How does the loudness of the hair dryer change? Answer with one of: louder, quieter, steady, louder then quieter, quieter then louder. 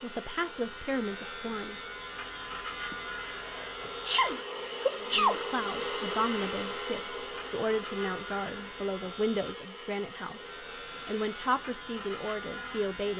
louder then quieter.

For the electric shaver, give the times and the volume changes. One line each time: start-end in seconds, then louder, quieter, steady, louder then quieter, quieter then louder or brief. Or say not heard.
0.0-13.1 steady.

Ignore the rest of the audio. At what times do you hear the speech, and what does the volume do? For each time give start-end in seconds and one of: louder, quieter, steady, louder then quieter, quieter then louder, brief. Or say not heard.
0.0-1.8 brief
5.0-13.1 steady.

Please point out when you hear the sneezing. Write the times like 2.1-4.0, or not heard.
2.9-5.5.